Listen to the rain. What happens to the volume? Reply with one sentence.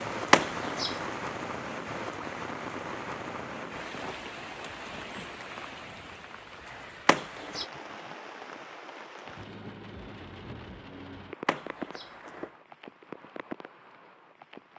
The volume of the rain goes down.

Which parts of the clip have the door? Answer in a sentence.
The door can be heard from 0.3 to 1.0 s, from 7.0 to 7.7 s and from 11.4 to 12.5 s.